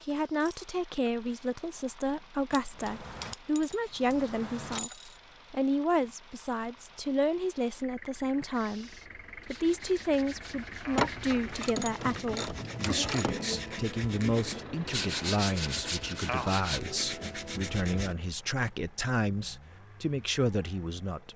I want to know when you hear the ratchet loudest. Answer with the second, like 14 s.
11 s.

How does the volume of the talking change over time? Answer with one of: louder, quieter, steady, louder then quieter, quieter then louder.
steady.